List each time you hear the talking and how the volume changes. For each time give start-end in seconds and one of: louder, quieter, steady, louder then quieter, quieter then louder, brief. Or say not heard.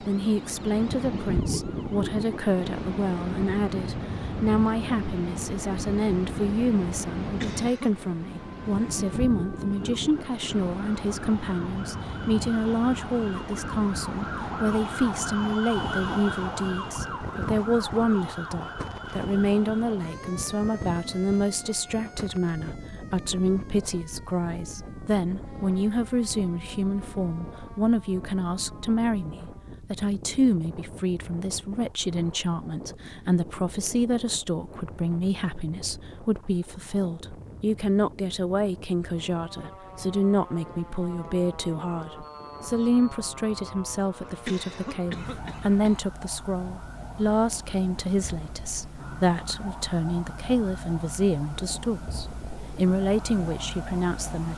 0.0-54.5 steady.